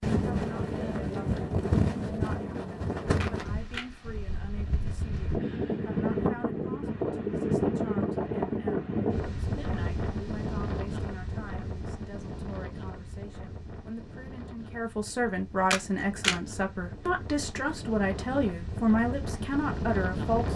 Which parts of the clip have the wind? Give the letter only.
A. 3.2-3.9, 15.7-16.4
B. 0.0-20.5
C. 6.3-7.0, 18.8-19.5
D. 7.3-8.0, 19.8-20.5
B.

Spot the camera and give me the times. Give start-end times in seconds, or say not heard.
3.2-3.9, 15.7-16.4.